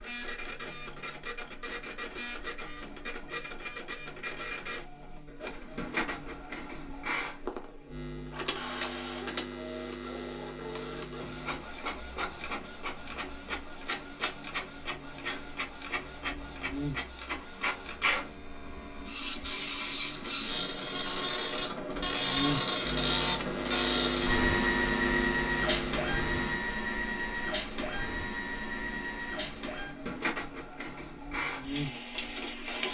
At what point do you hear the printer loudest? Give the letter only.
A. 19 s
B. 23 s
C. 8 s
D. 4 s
B.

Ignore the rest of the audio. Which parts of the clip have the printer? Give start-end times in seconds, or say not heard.
0.0-32.8.